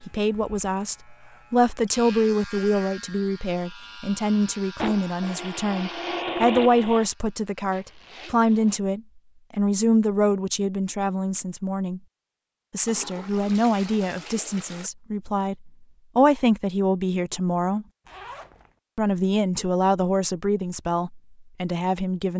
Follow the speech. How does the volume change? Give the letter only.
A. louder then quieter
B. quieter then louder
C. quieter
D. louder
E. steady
E.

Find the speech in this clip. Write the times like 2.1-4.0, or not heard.
0.0-12.0, 12.7-17.9, 18.9-22.3.